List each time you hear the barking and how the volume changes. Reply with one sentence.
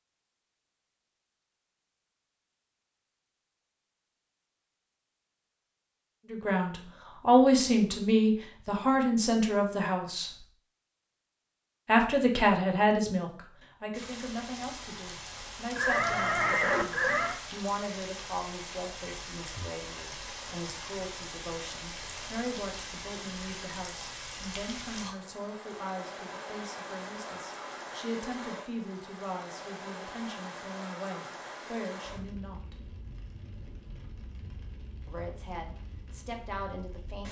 The barking can't be heard in this clip.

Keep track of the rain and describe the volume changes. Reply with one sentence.
The volume of the rain goes down.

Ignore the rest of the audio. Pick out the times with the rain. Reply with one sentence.
The rain can be heard from 13.9 to 37.2 s.